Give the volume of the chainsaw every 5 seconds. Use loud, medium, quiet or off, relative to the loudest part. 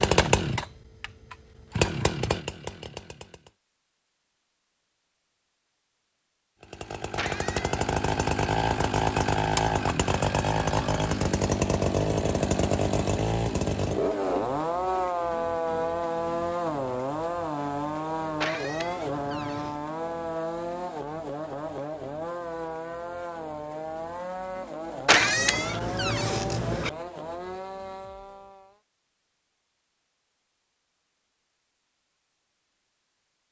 loud, loud, loud, loud, medium, medium, off.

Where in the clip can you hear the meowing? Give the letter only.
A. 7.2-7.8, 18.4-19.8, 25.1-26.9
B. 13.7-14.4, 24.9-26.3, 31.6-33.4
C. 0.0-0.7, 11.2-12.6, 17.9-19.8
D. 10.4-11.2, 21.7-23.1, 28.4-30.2
A.